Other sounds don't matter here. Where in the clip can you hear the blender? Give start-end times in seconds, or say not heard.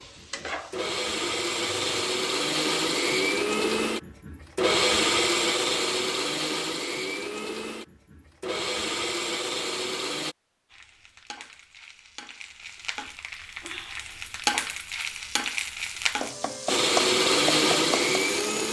0.0-10.3, 16.6-18.6.